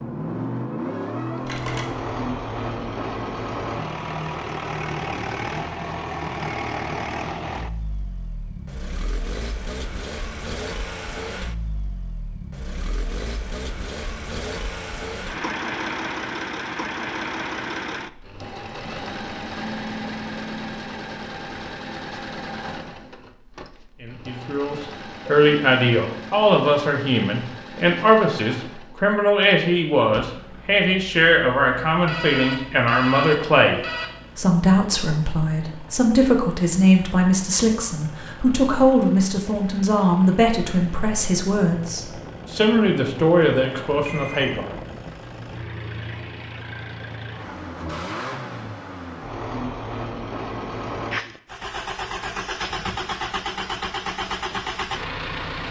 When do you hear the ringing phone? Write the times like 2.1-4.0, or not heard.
1.4-1.9, 32.0-34.1, 43.5-44.5.